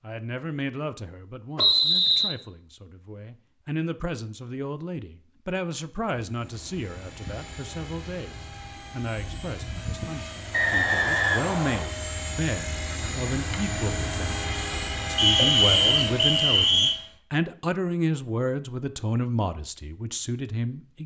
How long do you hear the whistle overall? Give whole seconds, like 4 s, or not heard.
4 s.